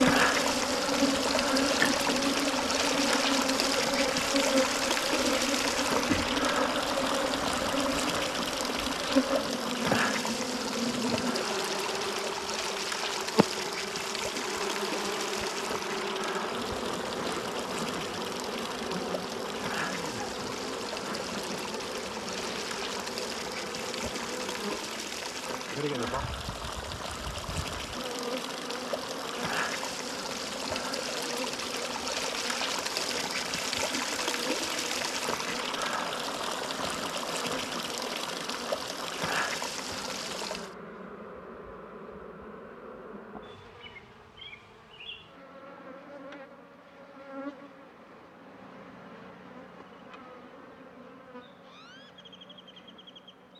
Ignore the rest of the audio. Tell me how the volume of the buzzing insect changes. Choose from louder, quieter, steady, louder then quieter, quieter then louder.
quieter.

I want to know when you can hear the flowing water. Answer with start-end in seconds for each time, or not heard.
0.0-40.8.